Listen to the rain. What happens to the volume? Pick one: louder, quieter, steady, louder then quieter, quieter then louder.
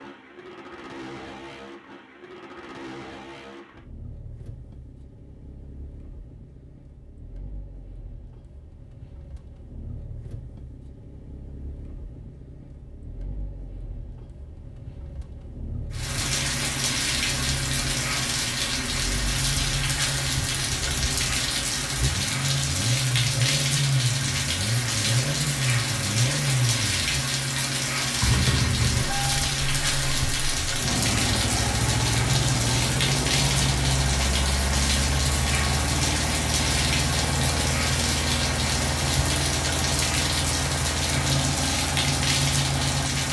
steady.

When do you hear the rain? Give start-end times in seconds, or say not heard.
15.9-43.2.